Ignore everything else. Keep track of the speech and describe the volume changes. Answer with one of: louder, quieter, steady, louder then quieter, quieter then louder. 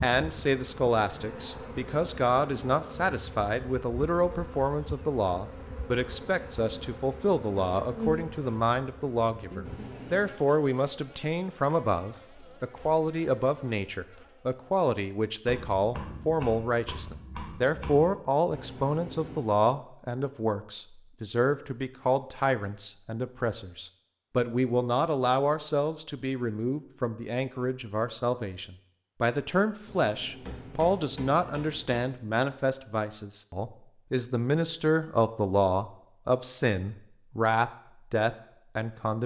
steady.